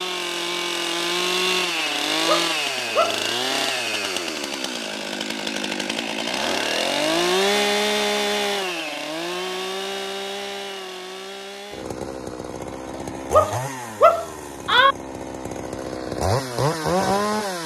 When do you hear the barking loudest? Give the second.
14 s.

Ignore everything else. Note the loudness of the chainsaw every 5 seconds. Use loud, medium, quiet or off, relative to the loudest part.
loud, loud, medium, loud.